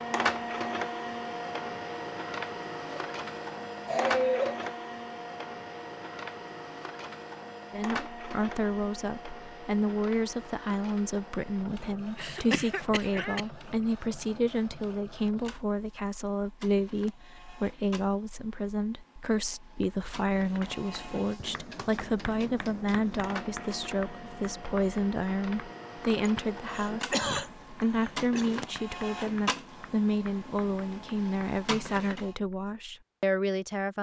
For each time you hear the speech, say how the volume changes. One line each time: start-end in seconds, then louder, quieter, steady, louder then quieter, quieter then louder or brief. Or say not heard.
7.7-33.9 steady.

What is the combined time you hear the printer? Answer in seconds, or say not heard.
32 s.